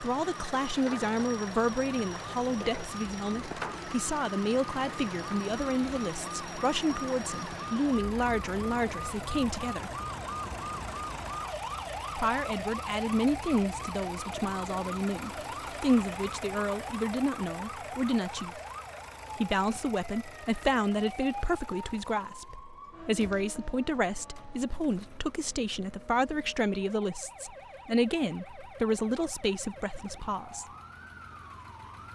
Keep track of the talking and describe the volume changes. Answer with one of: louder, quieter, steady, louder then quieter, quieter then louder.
steady.